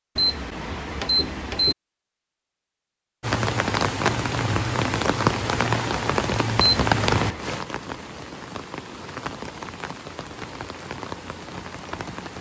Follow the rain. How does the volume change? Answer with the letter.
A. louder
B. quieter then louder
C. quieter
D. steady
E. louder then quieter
C.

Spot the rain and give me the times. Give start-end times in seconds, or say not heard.
3.2-12.3.